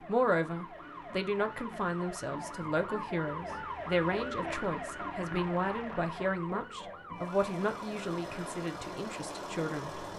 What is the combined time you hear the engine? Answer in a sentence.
The engine can be heard for 3 seconds in total.